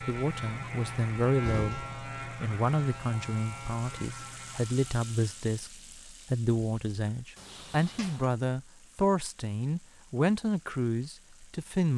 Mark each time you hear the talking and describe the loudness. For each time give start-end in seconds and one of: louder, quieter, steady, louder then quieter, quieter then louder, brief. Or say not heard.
0.0-11.9 steady.